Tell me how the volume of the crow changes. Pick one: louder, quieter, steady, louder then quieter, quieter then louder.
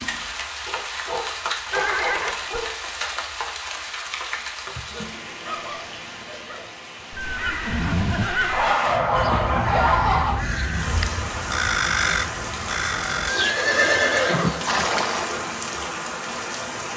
louder.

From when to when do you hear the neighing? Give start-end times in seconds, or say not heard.
1.7-2.7, 7.2-8.6, 13.2-15.3.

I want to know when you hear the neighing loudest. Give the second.
14 s.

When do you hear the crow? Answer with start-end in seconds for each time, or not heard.
7.1-13.3.